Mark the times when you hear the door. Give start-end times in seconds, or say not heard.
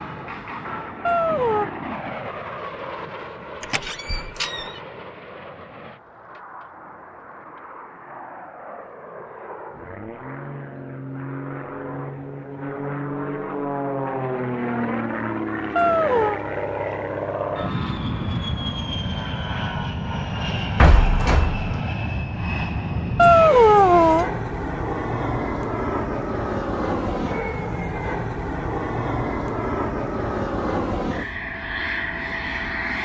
3.6-4.7, 20.8-21.8.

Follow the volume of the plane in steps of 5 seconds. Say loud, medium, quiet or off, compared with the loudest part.
medium, quiet, loud, loud, loud, loud, loud.